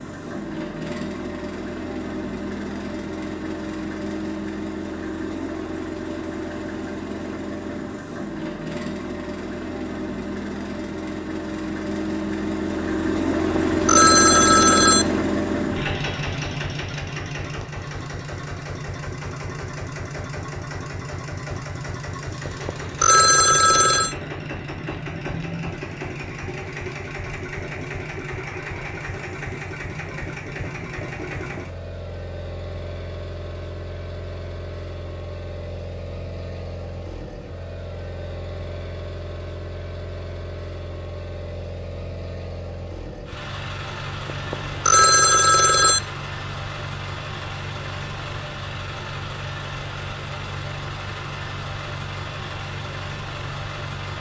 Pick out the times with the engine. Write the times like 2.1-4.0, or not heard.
0.0-54.1.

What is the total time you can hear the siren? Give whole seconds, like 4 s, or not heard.
not heard.